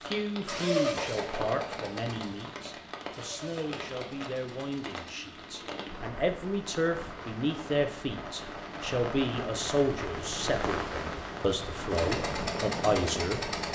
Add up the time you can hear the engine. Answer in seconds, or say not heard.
7 s.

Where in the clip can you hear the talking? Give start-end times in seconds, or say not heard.
0.0-13.4.